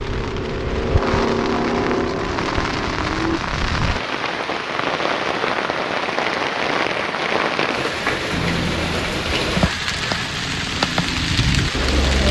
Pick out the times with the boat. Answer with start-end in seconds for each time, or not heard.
0.0-3.4, 8.3-12.2.